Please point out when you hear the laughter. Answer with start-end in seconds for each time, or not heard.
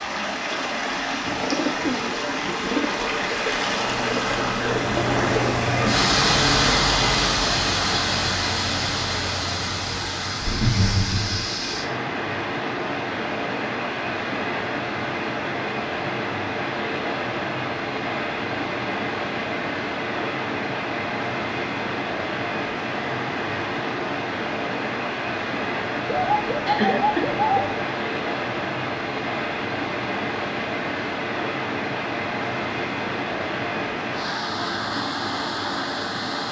10.4-11.4, 26.6-27.2.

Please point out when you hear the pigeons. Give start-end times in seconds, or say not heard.
1.2-2.9, 26.1-27.8.